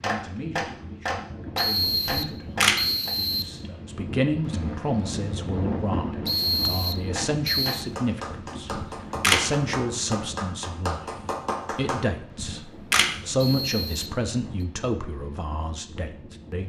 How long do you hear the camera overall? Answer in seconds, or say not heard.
2 s.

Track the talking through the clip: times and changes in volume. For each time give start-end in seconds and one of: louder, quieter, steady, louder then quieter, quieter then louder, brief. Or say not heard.
0.0-11.0 louder
11.7-16.6 louder then quieter.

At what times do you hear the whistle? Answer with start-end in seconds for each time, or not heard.
1.6-3.5, 6.2-7.8, 13.3-14.7.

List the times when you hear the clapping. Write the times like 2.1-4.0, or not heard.
0.0-3.1, 7.2-12.0.